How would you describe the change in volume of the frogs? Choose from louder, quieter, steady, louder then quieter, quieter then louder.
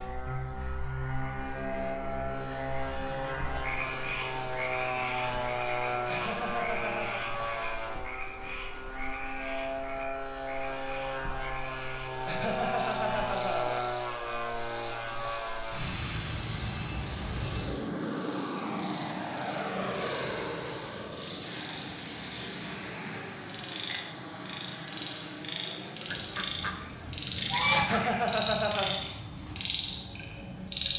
quieter then louder.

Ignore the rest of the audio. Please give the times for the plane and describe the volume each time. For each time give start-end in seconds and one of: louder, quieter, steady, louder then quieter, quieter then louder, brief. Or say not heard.
0.0-30.9 quieter.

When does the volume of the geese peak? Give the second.
28 s.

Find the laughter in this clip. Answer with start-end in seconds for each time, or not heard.
6.0-7.2, 12.2-13.9, 27.7-28.9.